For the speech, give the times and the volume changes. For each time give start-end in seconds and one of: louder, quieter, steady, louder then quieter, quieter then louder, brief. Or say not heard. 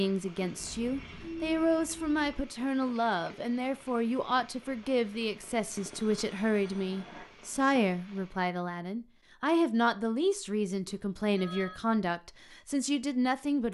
0.0-13.7 steady.